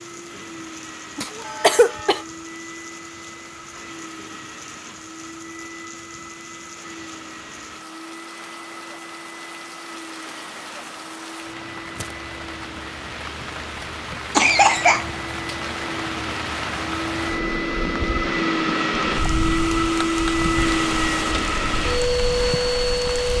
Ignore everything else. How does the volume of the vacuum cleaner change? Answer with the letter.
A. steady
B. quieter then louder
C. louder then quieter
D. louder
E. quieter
D.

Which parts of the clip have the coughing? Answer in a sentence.
You can hear the coughing from 1.1 to 2.2 s and from 14.3 to 15.1 s.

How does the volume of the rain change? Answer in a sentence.
The volume of the rain goes up.